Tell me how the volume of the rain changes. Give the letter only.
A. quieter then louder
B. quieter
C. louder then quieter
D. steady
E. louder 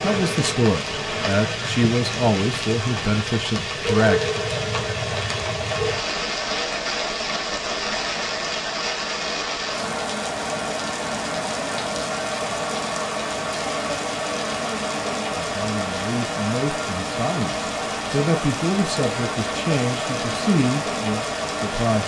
D.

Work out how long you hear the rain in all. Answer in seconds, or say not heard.
22 s.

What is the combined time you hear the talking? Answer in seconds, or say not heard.
11 s.